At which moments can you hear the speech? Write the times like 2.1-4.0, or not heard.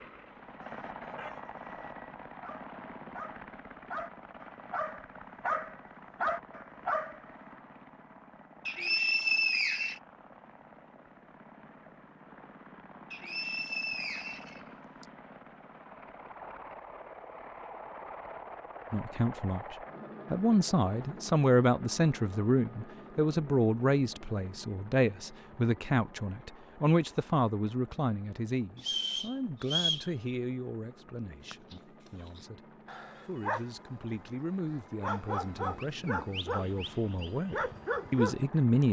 18.9-38.8.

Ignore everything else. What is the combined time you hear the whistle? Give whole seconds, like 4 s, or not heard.
5 s.